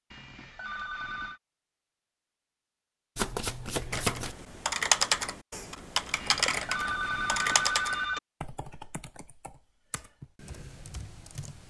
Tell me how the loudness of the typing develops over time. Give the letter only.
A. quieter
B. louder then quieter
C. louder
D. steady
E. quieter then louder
A.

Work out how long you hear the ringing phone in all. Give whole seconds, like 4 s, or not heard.
3 s.